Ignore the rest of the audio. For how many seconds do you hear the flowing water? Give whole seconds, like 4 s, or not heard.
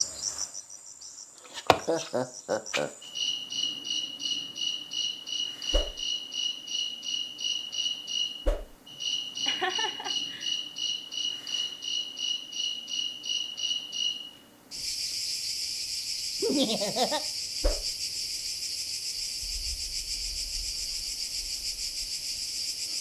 not heard.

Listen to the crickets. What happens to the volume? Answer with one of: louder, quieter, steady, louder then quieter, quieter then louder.
steady.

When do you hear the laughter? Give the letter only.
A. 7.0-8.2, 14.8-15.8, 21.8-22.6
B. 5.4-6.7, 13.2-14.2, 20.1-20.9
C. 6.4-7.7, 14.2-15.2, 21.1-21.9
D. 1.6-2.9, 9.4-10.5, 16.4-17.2
D.